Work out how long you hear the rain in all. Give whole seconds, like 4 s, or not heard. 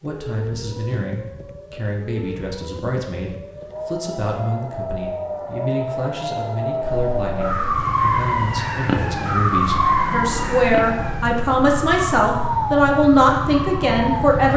not heard.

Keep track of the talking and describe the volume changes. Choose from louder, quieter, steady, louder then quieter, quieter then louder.
louder.